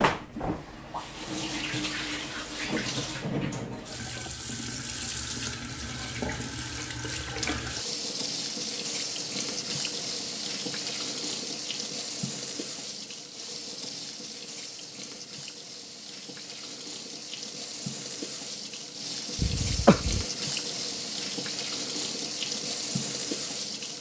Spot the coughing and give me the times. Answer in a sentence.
The coughing can be heard from 19.4 to 20.2 s.